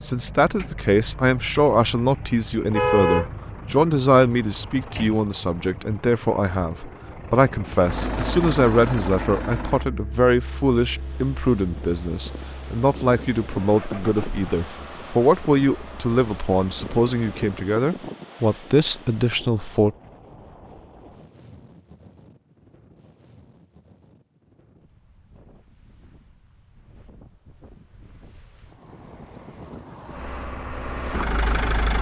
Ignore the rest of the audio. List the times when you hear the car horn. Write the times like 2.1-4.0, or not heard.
2.7-4.0.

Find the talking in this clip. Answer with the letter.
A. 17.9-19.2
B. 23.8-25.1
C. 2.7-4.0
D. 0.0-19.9
D.